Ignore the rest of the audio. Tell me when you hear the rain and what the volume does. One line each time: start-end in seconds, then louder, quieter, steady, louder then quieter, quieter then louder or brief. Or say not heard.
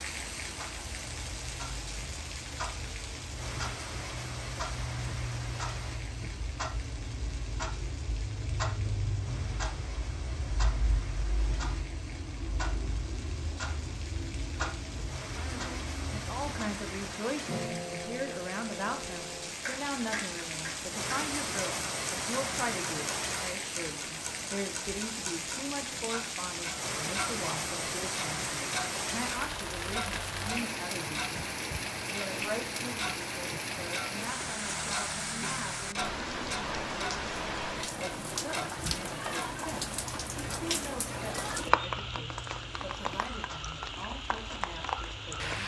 0.0-45.6 louder.